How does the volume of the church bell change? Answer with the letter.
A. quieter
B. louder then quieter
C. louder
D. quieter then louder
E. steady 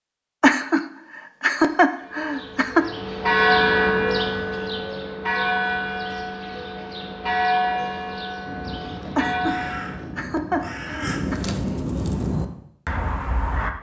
A.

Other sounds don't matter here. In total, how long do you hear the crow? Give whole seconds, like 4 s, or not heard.
5 s.